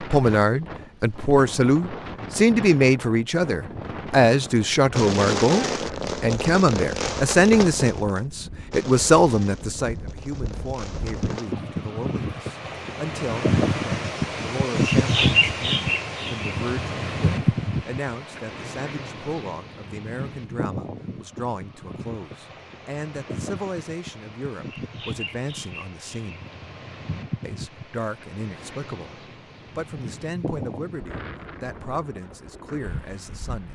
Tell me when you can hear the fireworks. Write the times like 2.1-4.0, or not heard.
4.9-11.6.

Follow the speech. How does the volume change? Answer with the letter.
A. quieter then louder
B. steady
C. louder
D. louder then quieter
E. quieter
E.